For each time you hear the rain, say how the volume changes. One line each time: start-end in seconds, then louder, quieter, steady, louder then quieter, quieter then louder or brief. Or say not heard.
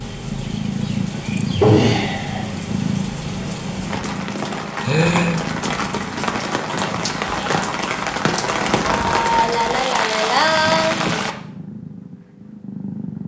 0.0-11.3 louder.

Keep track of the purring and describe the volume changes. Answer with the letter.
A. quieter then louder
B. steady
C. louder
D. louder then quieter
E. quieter
E.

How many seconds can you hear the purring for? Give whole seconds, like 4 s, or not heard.
13 s.